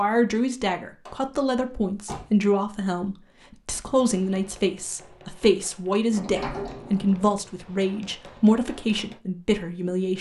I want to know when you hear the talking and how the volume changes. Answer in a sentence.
The talking can be heard from 0.0 to 10.1 s, at a steady volume.